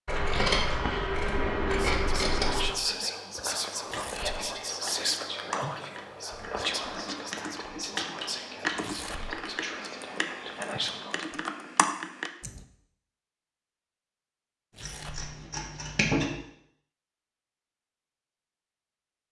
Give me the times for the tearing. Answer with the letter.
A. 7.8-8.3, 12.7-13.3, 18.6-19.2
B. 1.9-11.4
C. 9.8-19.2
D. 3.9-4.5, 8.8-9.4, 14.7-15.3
D.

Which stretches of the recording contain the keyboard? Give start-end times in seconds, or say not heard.
3.8-12.6.